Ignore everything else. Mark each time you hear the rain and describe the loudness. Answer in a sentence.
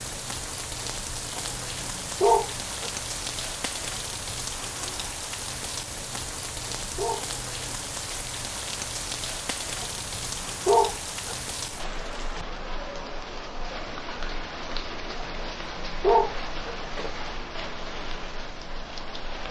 The rain can be heard from 0.0 to 19.4 s, at a steady volume.